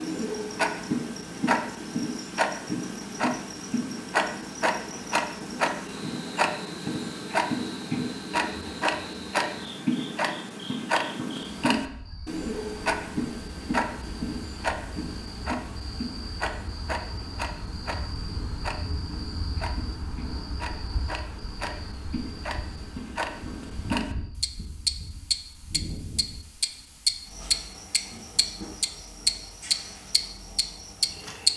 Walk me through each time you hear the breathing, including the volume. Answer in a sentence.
You can't hear the breathing here.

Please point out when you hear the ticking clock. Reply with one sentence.
The ticking clock can be heard from 0.0 to 31.5 s.